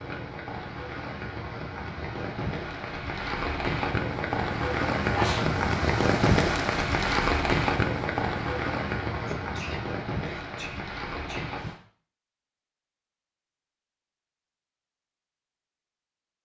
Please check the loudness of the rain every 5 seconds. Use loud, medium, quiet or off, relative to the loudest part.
medium, loud, medium, off.